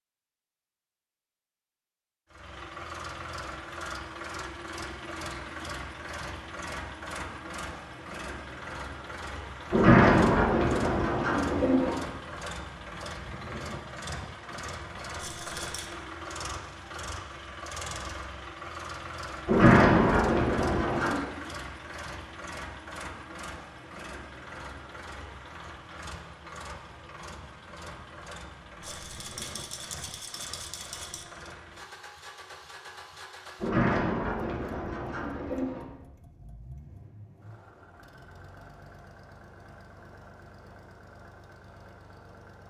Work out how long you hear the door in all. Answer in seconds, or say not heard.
6 s.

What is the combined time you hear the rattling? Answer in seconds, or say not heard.
3 s.